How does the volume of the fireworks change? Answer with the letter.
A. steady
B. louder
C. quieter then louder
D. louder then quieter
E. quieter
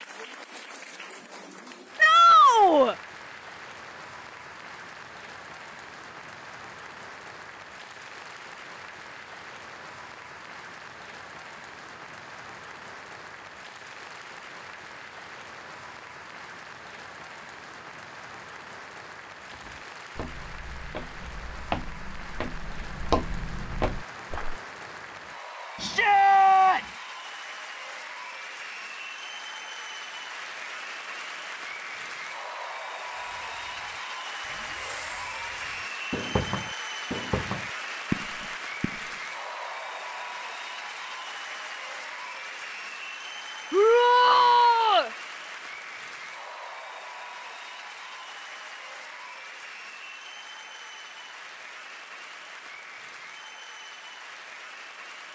B.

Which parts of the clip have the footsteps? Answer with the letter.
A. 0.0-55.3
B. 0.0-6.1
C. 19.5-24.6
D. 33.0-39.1
C.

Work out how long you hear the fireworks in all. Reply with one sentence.
The fireworks can be heard for 6 seconds in total.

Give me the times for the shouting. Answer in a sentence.
The shouting can be heard from 1.9 to 3.0 s, from 25.8 to 26.8 s and from 43.7 to 45.1 s.